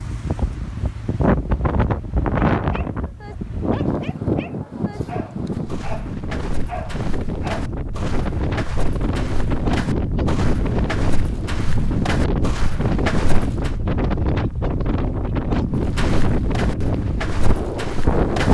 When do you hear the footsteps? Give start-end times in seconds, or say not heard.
5.5-13.8, 15.8-18.4.